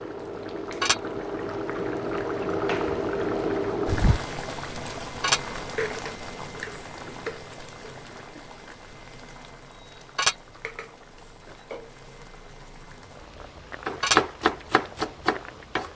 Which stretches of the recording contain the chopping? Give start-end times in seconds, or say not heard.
13.8-15.9.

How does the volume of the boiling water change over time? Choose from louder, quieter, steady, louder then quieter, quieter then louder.
quieter.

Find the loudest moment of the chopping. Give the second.
14 s.